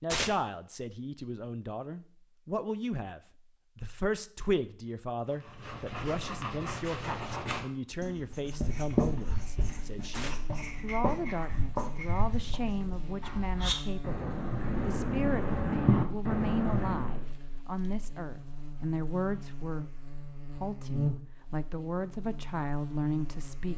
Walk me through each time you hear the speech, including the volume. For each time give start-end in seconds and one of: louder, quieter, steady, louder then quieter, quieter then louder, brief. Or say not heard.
0.0-23.7 steady.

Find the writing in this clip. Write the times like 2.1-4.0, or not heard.
5.3-17.2.